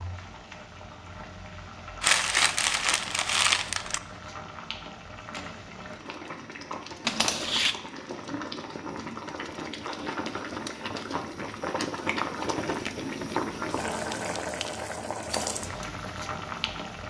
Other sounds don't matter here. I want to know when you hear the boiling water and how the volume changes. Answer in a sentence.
The boiling water can be heard from 0.0 to 17.0 s, getting louder.